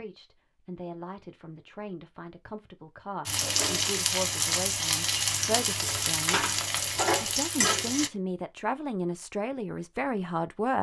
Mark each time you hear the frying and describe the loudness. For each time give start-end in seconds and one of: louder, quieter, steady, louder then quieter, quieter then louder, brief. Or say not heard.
3.2-8.1 steady.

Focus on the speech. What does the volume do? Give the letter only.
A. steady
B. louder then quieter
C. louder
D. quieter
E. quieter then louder
C.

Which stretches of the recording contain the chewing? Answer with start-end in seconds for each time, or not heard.
not heard.